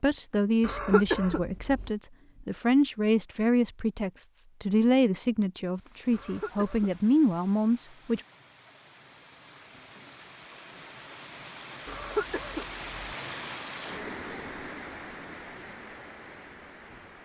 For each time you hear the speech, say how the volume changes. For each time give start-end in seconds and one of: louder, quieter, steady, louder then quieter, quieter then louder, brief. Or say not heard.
0.0-8.2 steady.